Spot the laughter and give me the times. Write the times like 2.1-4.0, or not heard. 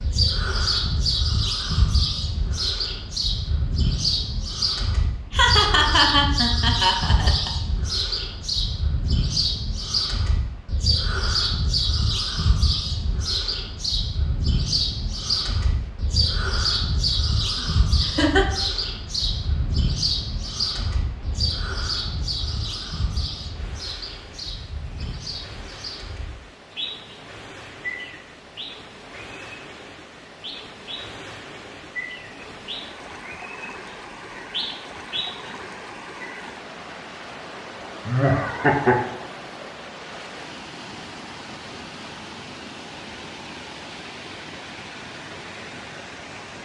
5.3-7.5, 18.0-18.4, 38.0-39.0.